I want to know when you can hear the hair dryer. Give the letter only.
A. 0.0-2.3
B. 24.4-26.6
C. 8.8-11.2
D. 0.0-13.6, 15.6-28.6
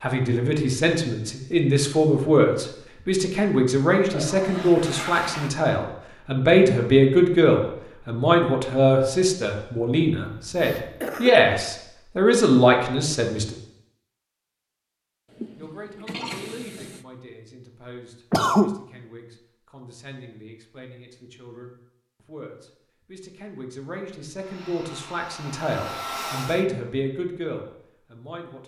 B.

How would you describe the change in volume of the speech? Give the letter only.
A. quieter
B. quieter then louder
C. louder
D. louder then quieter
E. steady
B.